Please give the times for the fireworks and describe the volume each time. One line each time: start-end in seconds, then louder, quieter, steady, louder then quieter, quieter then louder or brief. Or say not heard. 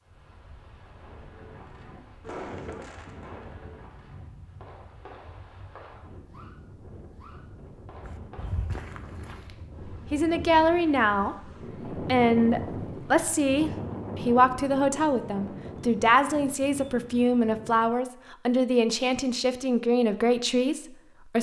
0.8-9.2 quieter.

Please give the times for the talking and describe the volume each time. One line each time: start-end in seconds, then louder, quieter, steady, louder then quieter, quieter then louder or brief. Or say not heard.
9.8-21.3 steady.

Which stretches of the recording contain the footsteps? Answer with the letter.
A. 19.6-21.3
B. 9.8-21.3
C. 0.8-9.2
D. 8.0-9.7
D.